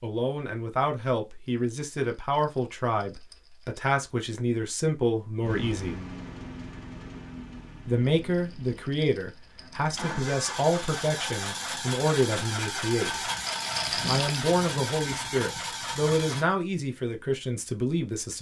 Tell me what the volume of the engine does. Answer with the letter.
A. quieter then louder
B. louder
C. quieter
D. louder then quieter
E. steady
A.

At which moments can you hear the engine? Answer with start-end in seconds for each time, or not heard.
5.4-16.4.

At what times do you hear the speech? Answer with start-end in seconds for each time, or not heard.
0.0-6.0, 7.8-13.2, 14.1-18.3.